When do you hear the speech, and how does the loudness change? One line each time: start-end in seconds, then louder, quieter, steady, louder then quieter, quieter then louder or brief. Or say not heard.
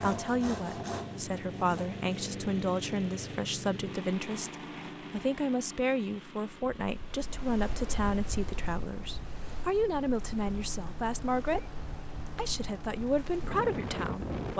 0.0-11.6 steady
12.3-14.5 brief.